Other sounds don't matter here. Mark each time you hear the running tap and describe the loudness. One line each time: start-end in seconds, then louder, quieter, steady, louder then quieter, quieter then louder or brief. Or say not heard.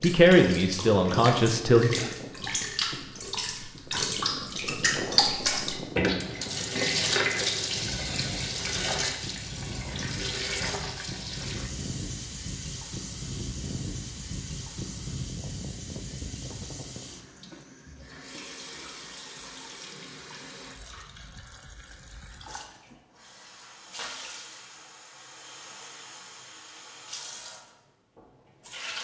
0.0-28.9 quieter.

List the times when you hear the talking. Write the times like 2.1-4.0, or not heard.
0.0-1.9.